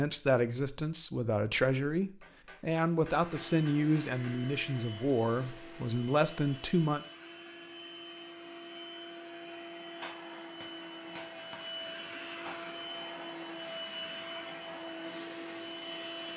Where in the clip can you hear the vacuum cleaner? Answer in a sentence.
You can hear the vacuum cleaner from 3.0 to 16.3 s.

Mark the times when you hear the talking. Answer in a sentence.
The talking can be heard from 0.0 to 7.0 s.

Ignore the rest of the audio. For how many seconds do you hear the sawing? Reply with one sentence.
The sawing can't be heard in this clip.